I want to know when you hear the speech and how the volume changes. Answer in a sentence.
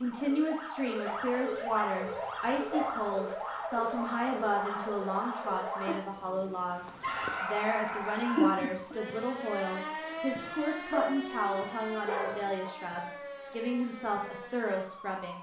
You can hear the speech from 0.0 to 15.3 s, at a steady volume.